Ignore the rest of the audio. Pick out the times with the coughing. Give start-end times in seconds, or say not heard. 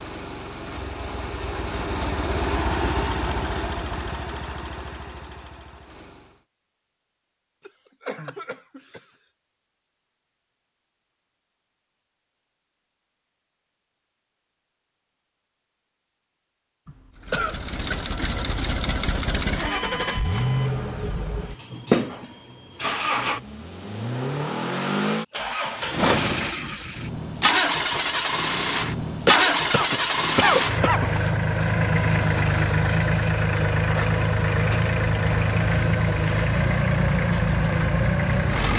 7.7-9.1, 16.9-17.9, 29.2-31.1.